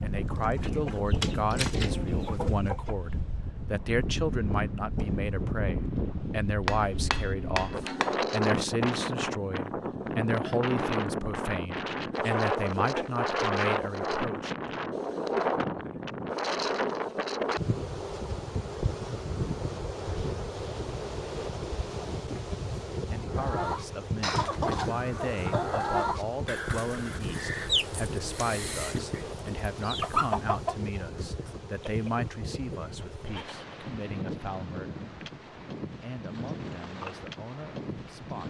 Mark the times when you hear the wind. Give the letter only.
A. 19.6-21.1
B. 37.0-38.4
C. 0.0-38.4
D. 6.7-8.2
C.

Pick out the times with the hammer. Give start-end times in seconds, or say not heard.
6.7-8.2.